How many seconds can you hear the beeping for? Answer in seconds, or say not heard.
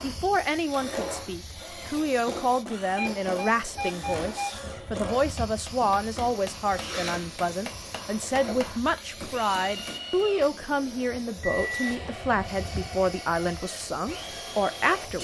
2 s.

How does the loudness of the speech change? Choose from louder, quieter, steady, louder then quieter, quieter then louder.
steady.